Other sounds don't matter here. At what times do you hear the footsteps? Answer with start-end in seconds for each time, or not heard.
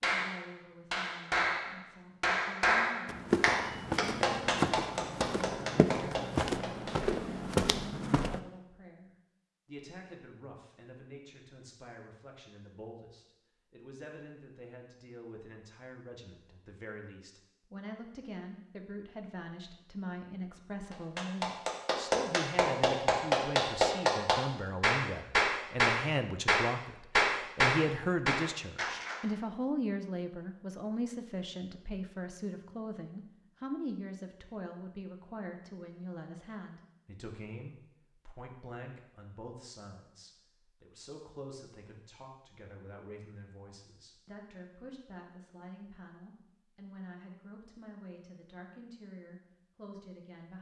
3.0-8.4.